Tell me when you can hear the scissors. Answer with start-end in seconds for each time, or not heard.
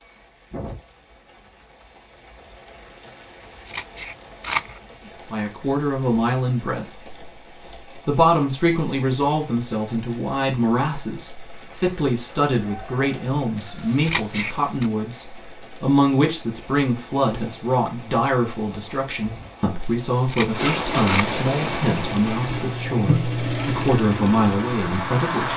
3.2-4.8, 13.6-14.9, 19.8-21.2.